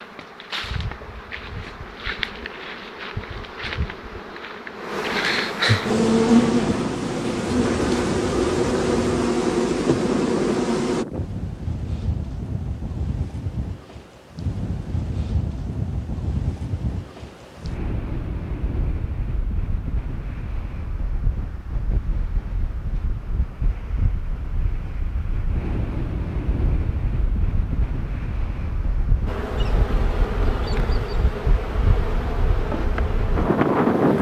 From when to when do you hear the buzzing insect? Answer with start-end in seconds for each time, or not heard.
0.0-11.1, 29.2-34.1.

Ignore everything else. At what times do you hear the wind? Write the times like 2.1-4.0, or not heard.
5.8-34.1.